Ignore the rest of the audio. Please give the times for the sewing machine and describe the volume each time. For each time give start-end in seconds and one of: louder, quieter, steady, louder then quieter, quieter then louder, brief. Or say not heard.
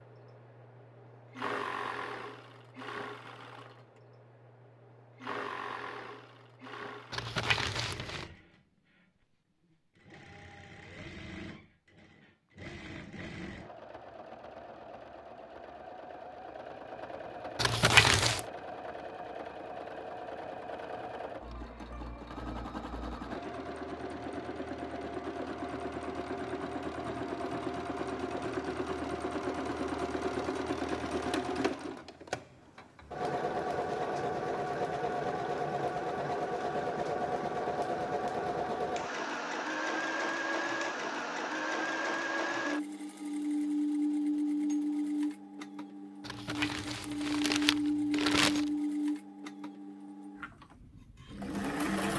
0.0-52.1 louder.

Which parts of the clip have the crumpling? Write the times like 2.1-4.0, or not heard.
7.1-8.2, 17.6-18.4, 46.2-48.7.